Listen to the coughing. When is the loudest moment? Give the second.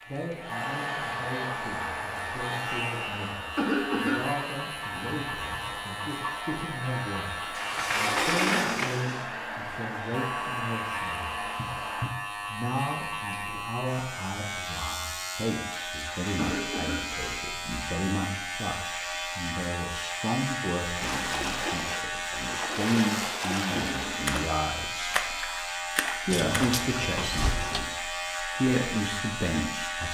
4 s.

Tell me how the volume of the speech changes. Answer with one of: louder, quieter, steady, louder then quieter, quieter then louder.
louder.